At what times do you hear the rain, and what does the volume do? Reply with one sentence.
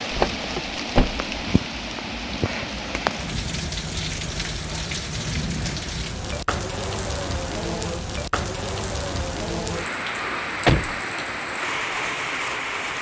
You can hear the rain from 0.0 to 12.9 s, at a steady volume.